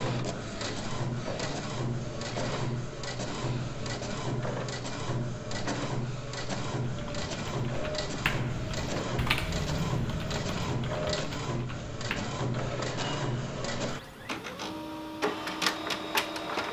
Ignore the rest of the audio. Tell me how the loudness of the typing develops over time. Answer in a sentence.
The volume of the typing goes up, then down.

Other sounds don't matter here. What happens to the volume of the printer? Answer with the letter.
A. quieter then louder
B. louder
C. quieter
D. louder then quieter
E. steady
E.